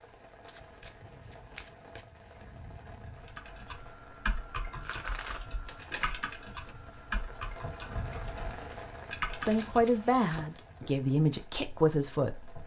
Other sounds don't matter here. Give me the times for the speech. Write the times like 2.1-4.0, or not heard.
9.4-12.6.